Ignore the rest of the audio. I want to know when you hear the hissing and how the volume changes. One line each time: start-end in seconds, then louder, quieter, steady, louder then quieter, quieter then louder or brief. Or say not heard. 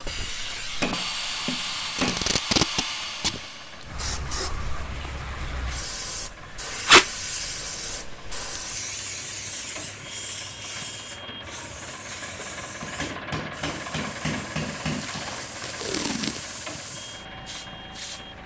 0.0-18.4 quieter.